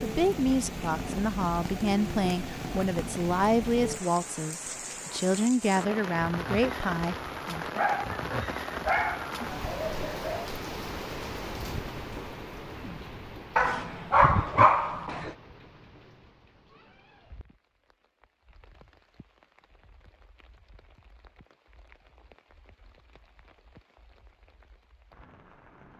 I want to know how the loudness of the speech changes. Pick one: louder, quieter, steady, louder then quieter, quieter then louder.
steady.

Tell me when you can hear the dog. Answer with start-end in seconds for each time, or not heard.
7.8-10.5, 13.6-15.3.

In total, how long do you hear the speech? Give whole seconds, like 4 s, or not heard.
8 s.